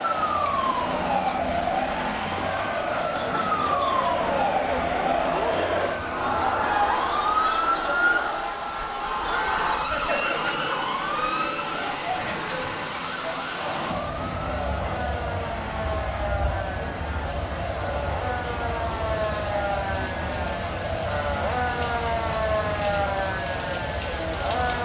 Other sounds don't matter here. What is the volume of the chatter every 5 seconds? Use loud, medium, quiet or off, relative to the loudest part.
loud, loud, medium, medium, medium.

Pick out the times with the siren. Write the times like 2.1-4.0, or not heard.
0.0-24.8.